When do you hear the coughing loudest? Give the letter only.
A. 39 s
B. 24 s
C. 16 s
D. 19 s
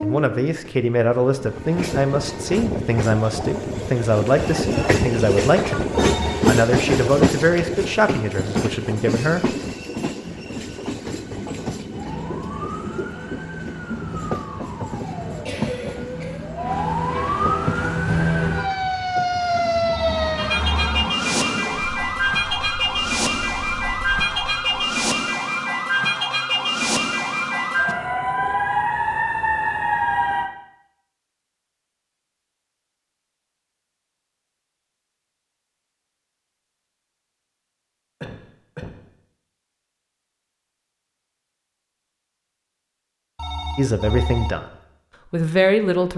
C.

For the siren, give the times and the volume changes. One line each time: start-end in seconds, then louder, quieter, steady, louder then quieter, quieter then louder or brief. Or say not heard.
11.9-30.5 louder.